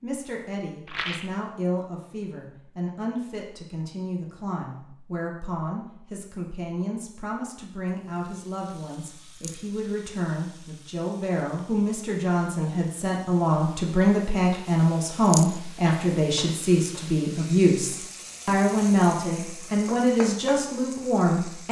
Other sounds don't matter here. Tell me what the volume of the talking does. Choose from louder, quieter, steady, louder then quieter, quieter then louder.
louder.